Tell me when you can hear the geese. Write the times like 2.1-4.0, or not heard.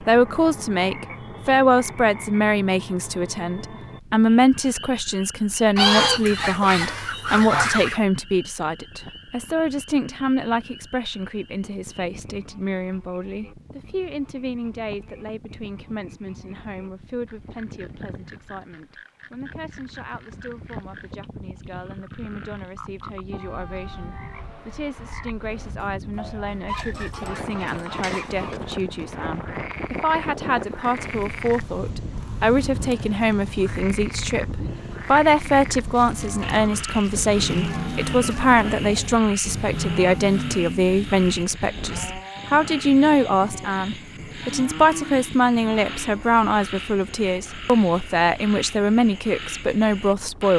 5.8-8.0, 26.6-28.6, 35.9-38.5.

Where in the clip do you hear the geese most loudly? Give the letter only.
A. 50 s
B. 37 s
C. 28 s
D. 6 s
D.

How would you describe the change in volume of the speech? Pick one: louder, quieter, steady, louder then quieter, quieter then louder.
quieter then louder.